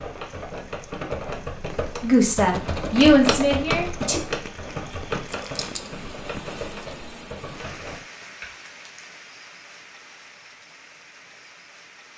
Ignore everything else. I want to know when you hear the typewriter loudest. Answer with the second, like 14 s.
3 s.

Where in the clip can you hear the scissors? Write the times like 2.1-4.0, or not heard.
4.9-5.9.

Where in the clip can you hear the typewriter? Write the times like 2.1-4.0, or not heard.
0.0-8.5.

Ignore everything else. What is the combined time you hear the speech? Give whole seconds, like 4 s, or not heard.
2 s.